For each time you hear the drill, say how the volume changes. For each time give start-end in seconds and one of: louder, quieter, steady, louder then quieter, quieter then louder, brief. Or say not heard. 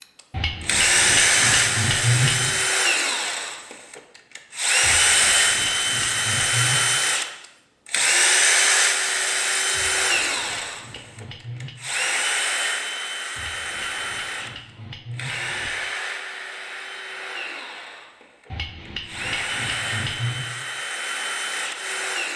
0.0-22.3 quieter.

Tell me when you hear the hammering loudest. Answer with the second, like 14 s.
2 s.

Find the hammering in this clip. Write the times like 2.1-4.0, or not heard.
0.3-2.6, 4.8-6.8, 9.7-11.8, 13.3-15.8, 18.5-20.5.